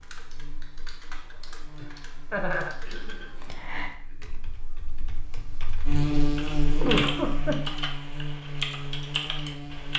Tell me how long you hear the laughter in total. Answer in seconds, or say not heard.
2 s.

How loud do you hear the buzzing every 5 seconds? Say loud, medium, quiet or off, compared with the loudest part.
quiet, loud.